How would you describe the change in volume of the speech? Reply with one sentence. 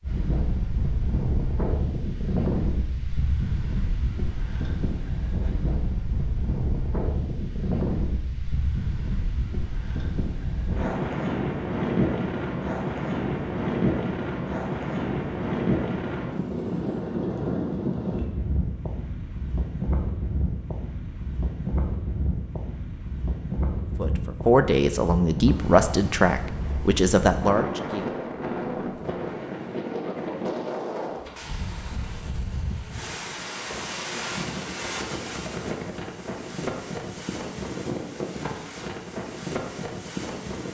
The loudness of the speech goes down, then up.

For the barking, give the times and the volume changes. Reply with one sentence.
You can't hear the barking here.